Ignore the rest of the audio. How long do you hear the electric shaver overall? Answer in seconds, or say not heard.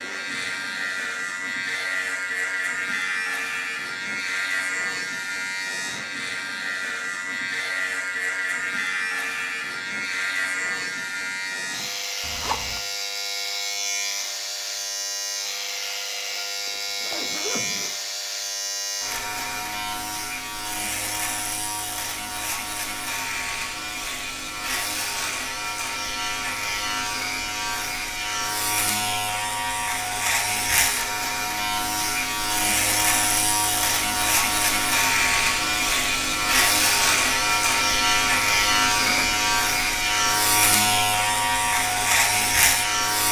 43 s.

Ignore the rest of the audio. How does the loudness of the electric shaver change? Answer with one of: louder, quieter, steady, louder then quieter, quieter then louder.
louder.